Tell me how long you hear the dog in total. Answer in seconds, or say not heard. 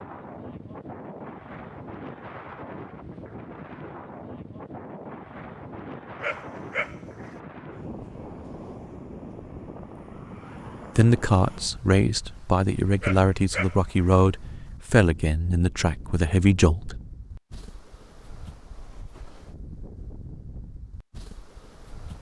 2 s.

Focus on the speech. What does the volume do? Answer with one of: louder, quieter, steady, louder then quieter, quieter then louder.
steady.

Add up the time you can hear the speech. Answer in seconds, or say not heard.
6 s.